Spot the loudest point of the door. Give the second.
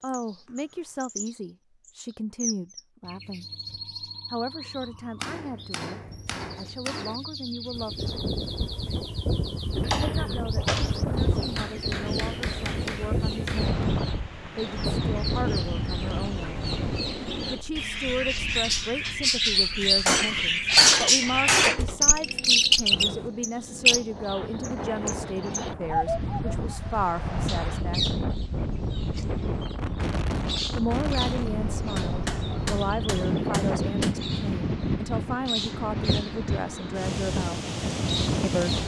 11 s.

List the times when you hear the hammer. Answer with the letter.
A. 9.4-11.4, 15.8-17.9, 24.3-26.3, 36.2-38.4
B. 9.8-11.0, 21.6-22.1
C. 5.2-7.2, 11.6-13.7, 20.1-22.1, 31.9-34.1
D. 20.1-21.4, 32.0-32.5
C.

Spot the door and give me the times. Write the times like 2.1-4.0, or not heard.
9.8-11.0, 21.6-22.1.